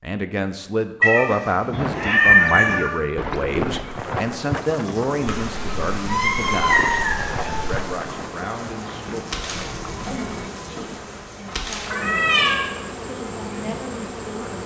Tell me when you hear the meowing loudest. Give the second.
2 s.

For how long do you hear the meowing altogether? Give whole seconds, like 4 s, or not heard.
5 s.